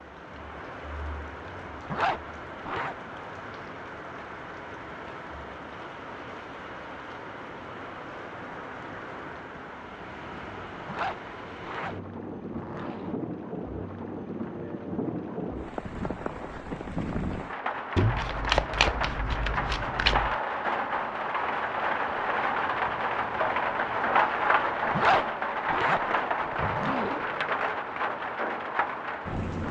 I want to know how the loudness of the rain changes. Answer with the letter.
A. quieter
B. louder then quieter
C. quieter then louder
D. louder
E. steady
D.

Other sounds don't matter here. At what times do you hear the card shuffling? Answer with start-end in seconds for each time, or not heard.
17.9-20.4.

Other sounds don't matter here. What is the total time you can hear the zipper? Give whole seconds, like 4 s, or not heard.
6 s.